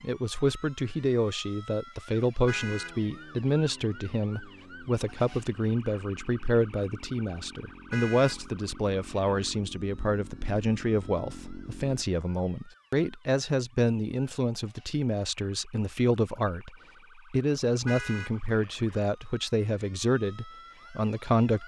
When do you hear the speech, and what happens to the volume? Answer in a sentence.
The speech can be heard from 0.0 to 21.6 s, at a steady volume.